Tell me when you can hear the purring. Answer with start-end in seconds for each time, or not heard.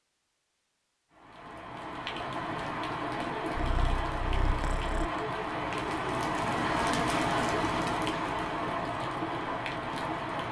3.5-5.1.